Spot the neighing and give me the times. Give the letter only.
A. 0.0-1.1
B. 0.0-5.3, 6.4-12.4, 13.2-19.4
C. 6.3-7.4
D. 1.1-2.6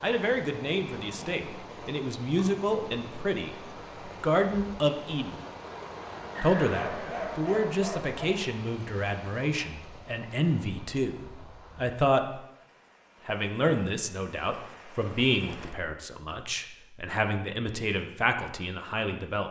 C.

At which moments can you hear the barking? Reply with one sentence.
The barking can be heard from 6.7 to 8.2 s.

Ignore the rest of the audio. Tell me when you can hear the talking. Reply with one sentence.
You can hear the talking from 0.0 to 5.3 s, from 6.4 to 12.4 s and from 13.2 to 19.4 s.